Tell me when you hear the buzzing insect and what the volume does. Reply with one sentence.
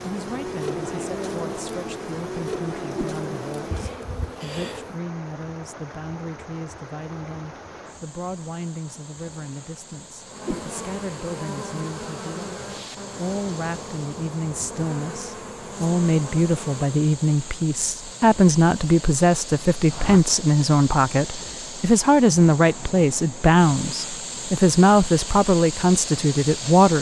The buzzing insect can be heard from 0.0 to 5.0 s, getting quieter; and from 10.2 to 17.1 s, at a steady volume.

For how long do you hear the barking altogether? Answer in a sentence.
You can't hear the barking here.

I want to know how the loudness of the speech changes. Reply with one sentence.
The volume of the speech goes up.